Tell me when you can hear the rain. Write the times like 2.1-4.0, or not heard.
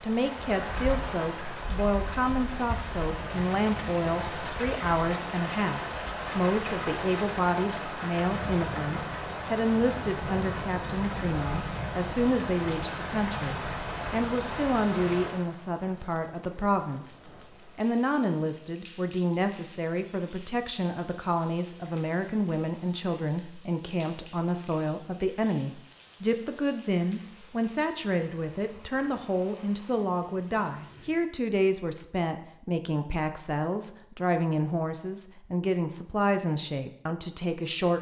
0.0-31.2.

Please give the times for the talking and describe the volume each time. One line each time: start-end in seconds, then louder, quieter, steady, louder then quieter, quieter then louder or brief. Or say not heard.
0.0-37.9 steady.